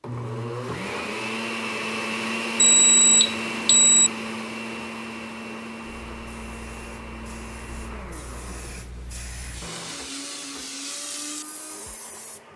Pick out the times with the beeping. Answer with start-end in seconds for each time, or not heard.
2.5-4.1.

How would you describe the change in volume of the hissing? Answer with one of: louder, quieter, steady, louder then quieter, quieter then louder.
louder.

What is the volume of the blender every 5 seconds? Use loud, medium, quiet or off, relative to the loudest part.
loud, medium, quiet.